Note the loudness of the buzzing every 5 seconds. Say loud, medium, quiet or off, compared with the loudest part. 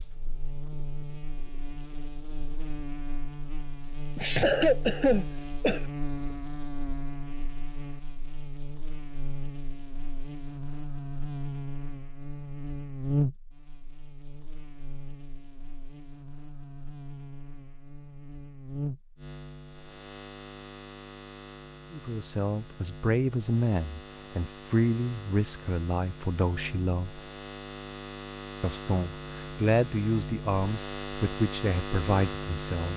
medium, medium, loud, medium, medium, medium, loud.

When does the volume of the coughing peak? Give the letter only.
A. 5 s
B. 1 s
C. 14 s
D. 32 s
A.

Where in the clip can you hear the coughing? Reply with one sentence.
The coughing can be heard from 4.2 to 5.8 s.